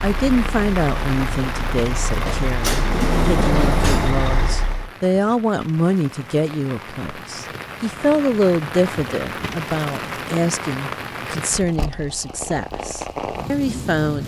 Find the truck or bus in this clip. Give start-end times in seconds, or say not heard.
0.0-4.9.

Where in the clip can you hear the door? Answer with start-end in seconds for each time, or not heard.
2.6-4.2.